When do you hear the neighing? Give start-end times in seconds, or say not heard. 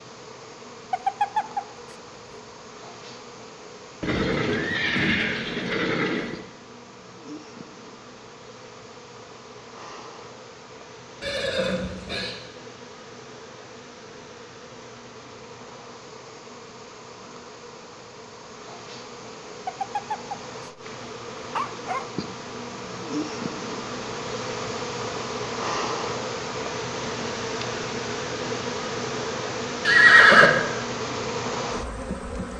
4.0-6.3, 11.2-12.3, 29.9-30.5.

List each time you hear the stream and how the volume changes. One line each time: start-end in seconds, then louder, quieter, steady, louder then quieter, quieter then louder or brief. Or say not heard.
not heard.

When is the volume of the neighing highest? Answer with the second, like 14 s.
30 s.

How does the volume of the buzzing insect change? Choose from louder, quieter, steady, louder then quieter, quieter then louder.
louder.